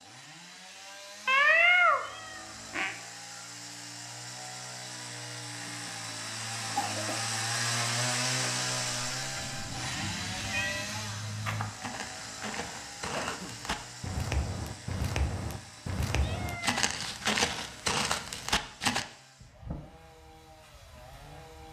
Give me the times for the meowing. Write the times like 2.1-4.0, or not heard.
1.2-3.0, 9.3-11.0, 15.8-16.9.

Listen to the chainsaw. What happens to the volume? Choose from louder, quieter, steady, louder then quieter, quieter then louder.
louder then quieter.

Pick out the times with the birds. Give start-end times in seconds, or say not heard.
not heard.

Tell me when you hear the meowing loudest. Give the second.
2 s.